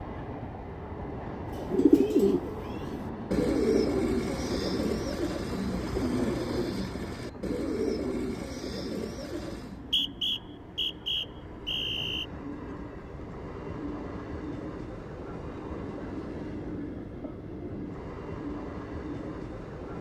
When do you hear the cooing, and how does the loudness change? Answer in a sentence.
You can hear the cooing from 1.5 to 9.8 s, getting quieter.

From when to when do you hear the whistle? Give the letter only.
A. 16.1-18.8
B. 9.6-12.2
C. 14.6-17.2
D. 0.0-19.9
B.